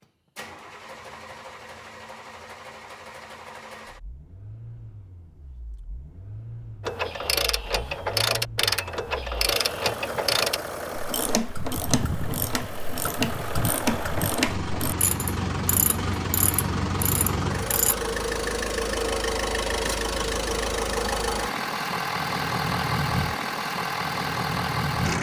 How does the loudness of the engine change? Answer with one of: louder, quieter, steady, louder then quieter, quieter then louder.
louder.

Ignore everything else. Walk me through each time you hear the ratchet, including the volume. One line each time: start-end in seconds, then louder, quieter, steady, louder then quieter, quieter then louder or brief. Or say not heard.
6.8-17.9 quieter.